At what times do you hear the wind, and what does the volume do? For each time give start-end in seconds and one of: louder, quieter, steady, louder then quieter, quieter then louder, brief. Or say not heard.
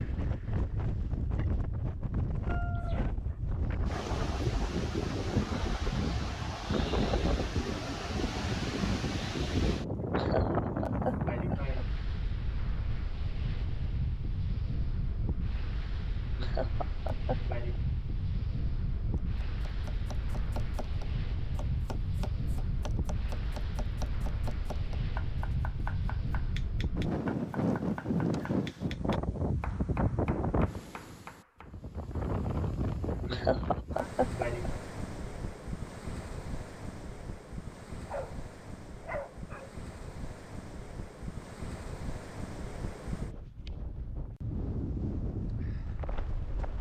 0.0-46.7 quieter.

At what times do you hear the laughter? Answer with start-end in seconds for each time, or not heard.
10.0-11.8, 16.2-17.8, 33.1-34.8.